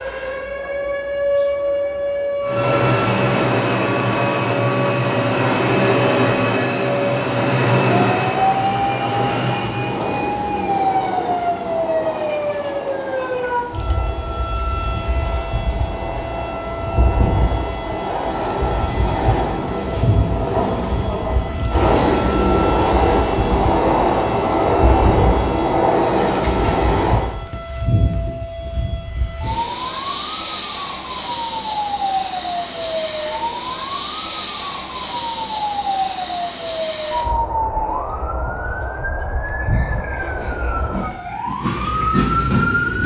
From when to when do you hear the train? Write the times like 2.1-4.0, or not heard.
2.4-27.4, 40.0-43.0.